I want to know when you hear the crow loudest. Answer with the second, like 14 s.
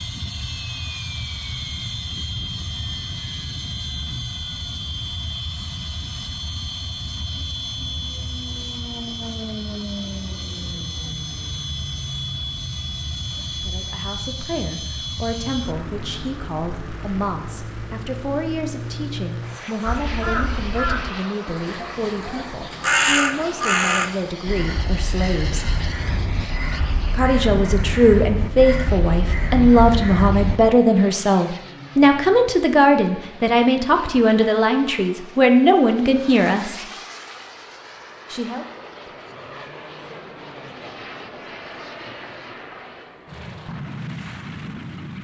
23 s.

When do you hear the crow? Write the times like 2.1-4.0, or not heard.
19.9-30.7.